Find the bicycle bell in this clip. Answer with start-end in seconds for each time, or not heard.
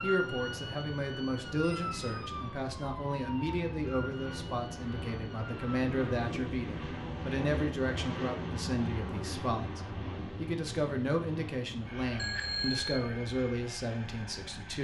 1.6-2.1, 12.2-13.1.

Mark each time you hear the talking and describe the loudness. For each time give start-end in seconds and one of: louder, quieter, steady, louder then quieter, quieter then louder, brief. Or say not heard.
0.0-14.7 steady.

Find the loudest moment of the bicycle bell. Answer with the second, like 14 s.
13 s.